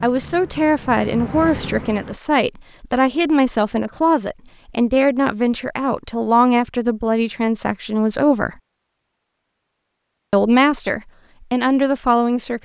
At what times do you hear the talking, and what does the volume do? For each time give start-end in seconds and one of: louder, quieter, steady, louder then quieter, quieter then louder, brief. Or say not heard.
0.0-8.6 steady
10.3-12.6 brief.